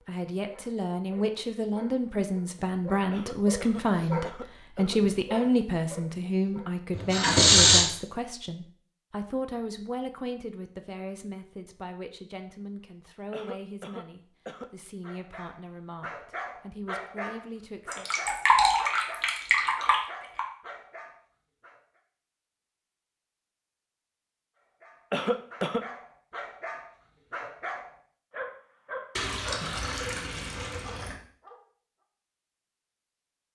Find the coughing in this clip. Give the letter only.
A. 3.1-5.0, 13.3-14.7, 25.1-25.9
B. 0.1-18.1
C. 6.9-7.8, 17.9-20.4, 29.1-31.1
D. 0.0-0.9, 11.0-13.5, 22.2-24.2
A.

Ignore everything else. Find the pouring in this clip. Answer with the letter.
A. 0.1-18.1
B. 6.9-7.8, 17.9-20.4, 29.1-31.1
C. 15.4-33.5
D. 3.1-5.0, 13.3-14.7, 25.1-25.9
B.